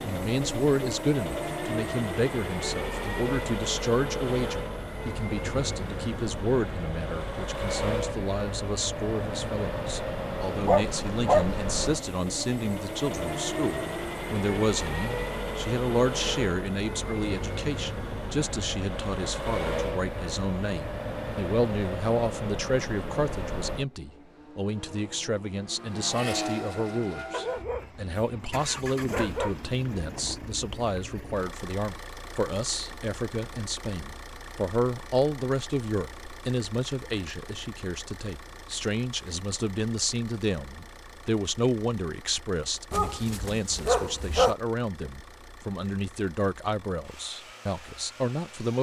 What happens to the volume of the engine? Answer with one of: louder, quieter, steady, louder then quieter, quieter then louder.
quieter.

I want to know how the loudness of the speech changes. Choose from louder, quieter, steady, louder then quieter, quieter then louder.
steady.